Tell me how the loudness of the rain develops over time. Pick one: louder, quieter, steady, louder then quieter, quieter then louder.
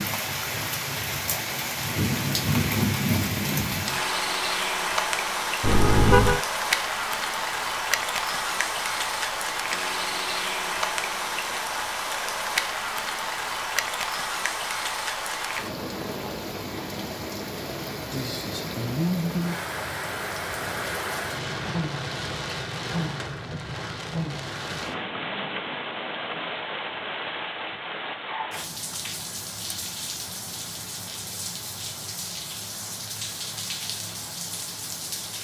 quieter.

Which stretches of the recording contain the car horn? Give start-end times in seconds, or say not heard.
5.6-6.4.